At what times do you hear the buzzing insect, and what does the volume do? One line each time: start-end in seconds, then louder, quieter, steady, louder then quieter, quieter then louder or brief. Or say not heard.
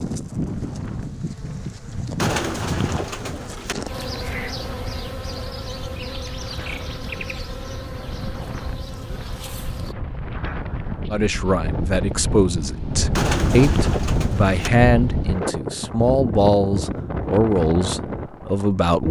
0.0-9.9 quieter.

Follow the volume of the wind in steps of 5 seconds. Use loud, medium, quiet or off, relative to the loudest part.
quiet, medium, loud, loud.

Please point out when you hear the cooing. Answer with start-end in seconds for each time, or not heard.
2.1-3.8, 13.2-14.7.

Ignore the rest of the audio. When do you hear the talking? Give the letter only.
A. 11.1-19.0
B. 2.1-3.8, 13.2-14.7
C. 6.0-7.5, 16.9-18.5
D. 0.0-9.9
A.